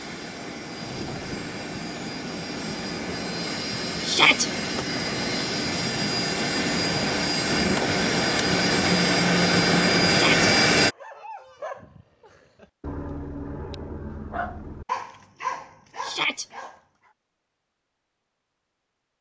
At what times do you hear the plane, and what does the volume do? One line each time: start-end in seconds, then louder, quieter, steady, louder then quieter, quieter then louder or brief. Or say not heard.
0.0-10.9 louder.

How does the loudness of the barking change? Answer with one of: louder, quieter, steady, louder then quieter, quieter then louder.
louder.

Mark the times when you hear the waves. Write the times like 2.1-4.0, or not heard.
not heard.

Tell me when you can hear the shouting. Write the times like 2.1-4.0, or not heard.
4.0-4.5, 10.1-10.5, 16.0-16.4.